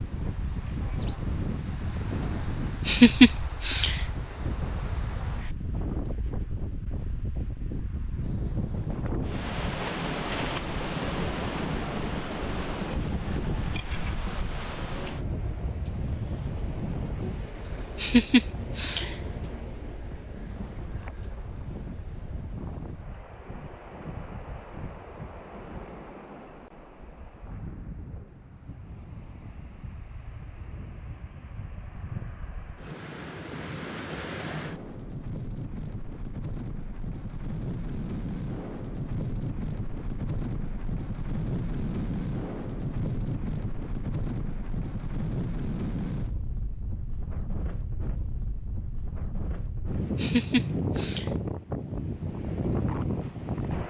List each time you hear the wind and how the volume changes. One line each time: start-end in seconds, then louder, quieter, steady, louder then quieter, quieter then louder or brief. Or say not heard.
0.0-53.8 quieter then louder.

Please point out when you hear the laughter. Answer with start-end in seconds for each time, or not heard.
2.9-4.0, 17.9-19.1, 50.1-51.3.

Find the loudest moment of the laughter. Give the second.
3 s.